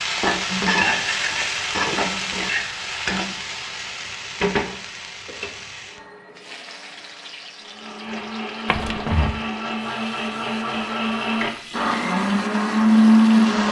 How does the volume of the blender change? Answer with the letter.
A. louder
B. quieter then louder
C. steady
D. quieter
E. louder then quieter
A.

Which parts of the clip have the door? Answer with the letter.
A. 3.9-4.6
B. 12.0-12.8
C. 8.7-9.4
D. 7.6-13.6
C.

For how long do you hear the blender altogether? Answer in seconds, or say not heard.
6 s.